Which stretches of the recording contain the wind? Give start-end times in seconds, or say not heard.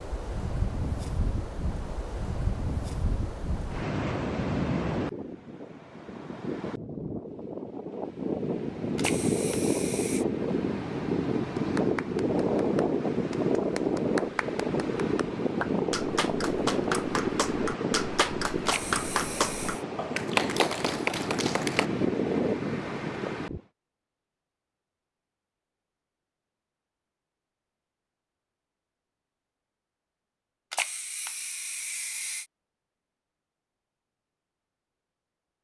0.0-23.6.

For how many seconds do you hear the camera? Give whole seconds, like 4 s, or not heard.
4 s.